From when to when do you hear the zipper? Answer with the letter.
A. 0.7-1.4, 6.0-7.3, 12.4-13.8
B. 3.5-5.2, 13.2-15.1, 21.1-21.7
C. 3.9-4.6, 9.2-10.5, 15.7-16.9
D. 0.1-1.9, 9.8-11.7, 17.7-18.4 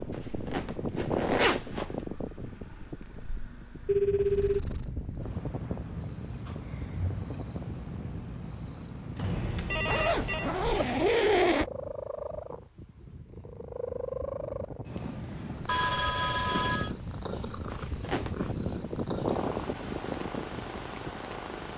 D.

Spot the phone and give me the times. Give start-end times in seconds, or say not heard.
3.9-4.6, 9.2-10.5, 15.7-16.9.